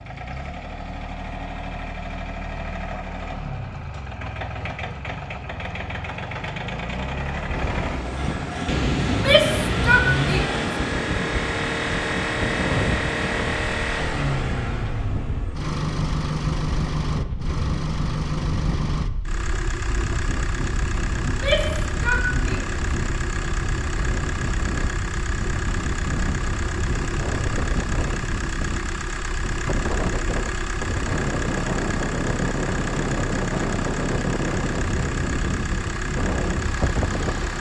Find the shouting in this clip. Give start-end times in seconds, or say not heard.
9.1-10.6, 21.2-22.8.